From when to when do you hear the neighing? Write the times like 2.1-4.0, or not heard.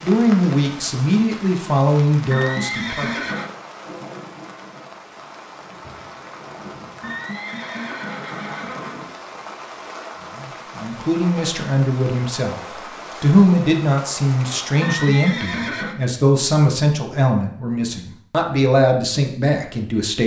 2.3-3.5, 7.0-9.1, 14.8-15.9.